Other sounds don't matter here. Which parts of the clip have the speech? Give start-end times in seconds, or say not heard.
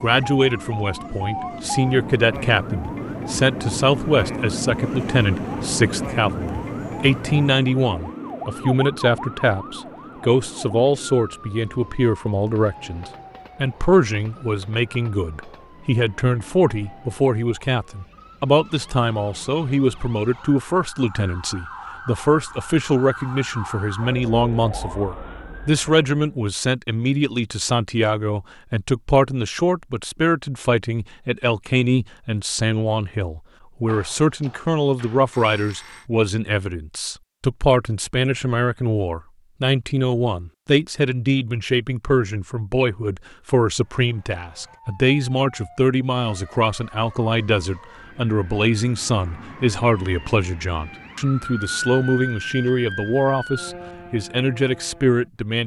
0.0-55.6.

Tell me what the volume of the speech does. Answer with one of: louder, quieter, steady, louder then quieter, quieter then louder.
steady.